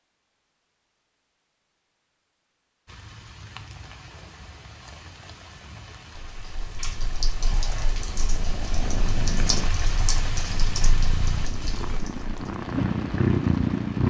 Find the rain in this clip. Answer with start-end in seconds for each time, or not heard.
2.9-14.0.